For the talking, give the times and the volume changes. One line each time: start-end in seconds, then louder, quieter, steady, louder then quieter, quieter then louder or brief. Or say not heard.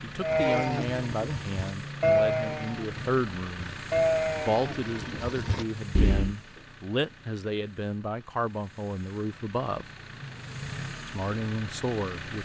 0.0-9.8 steady
11.1-12.4 brief.